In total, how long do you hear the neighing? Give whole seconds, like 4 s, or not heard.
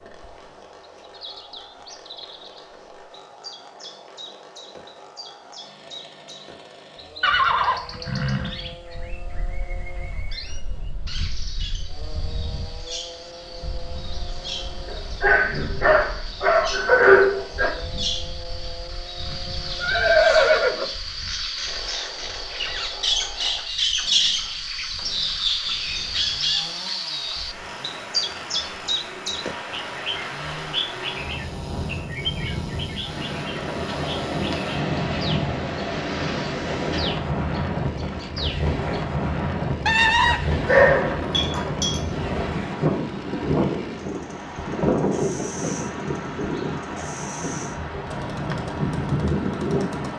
4 s.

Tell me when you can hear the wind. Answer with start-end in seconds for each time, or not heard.
8.8-50.1.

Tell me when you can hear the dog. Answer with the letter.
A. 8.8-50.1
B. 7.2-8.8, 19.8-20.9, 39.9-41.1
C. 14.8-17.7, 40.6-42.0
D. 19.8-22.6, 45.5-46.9
C.